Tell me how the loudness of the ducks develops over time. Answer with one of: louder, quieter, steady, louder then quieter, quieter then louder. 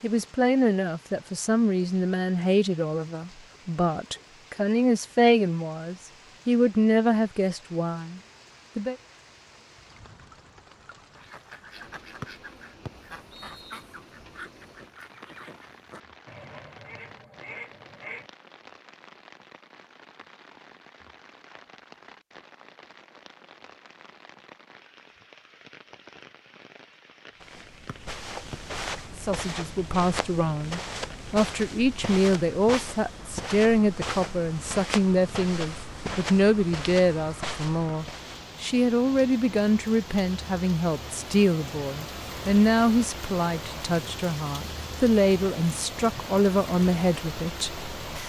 steady.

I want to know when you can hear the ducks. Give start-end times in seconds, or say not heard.
11.1-18.3.